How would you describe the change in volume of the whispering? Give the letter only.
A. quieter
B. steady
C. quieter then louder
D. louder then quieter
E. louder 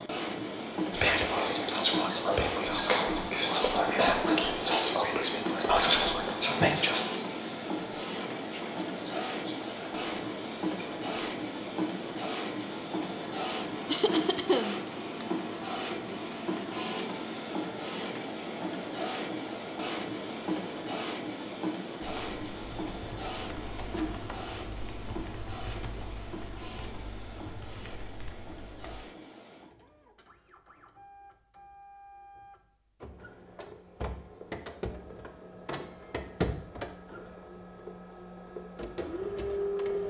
A.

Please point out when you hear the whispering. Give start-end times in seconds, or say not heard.
0.9-11.4.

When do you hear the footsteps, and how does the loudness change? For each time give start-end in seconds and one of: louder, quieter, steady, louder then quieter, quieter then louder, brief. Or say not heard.
not heard.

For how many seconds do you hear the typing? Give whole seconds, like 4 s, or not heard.
7 s.